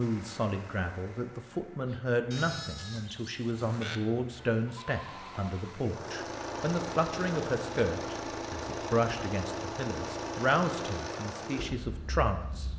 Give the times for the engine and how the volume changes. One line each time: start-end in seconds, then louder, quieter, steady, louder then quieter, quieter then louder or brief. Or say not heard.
0.0-12.7 louder.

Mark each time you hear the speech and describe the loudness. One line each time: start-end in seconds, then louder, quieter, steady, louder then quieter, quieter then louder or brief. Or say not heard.
0.0-12.7 steady.